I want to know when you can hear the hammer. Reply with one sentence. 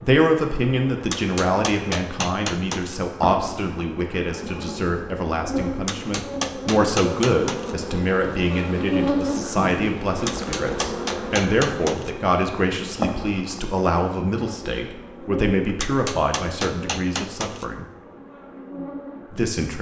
The hammer can be heard from 1.1 to 3.0 s, from 5.8 to 7.8 s, from 10.2 to 12.1 s and from 15.8 to 17.6 s.